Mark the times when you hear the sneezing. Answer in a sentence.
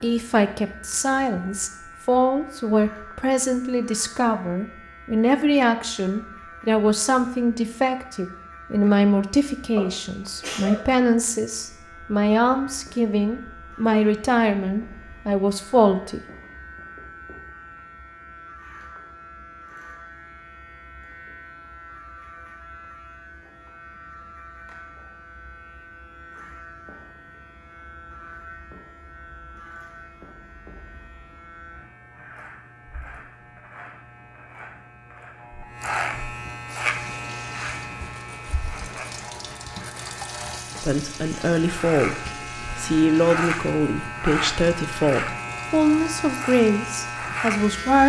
You can hear the sneezing from 9.8 to 10.8 s.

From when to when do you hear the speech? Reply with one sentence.
The speech can be heard from 0.0 to 16.2 s and from 40.8 to 48.0 s.